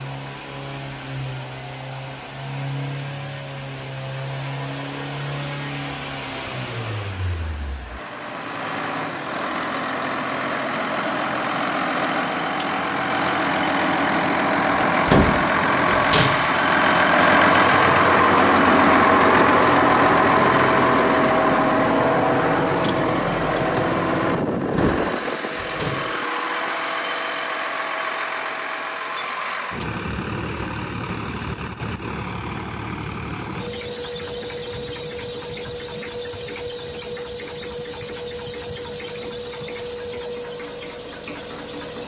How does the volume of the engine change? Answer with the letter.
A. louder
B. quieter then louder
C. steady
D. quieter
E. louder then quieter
E.